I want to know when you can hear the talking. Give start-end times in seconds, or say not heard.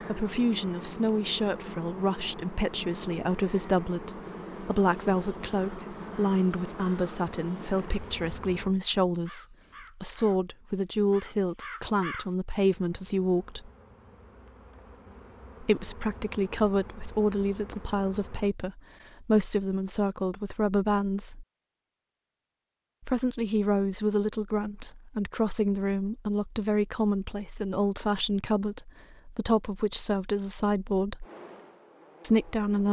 0.1-13.7, 15.6-21.4, 23.1-31.2, 32.2-32.8.